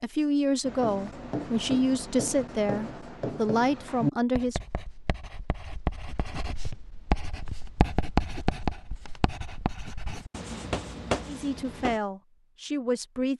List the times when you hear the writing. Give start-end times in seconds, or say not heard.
0.6-12.0.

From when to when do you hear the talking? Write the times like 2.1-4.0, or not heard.
0.0-4.6, 11.2-13.3.